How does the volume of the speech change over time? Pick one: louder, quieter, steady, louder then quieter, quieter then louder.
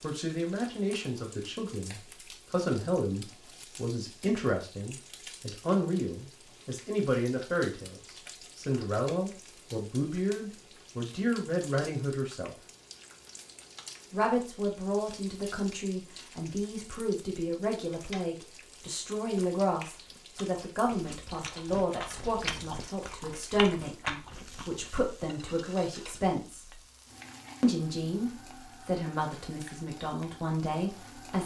steady.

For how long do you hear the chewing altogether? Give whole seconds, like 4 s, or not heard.
6 s.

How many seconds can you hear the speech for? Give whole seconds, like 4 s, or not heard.
29 s.